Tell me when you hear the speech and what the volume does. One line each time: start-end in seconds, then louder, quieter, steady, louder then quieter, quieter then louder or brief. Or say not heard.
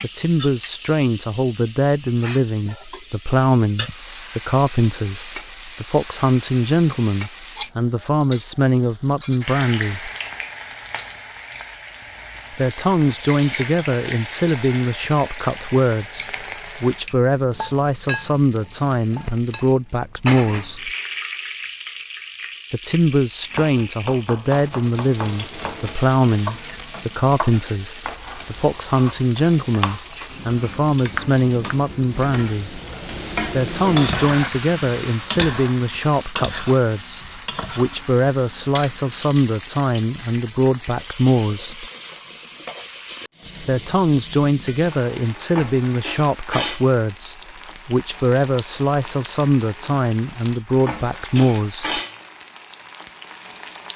0.0-10.1 steady
12.5-20.9 steady
22.7-32.8 steady
33.5-41.9 steady
43.6-52.0 steady.